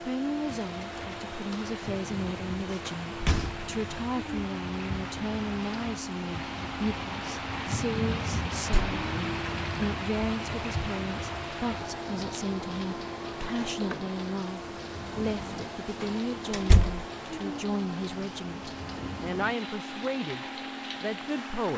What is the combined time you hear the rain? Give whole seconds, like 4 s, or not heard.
22 s.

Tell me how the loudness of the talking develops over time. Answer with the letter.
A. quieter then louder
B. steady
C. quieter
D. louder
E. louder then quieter
B.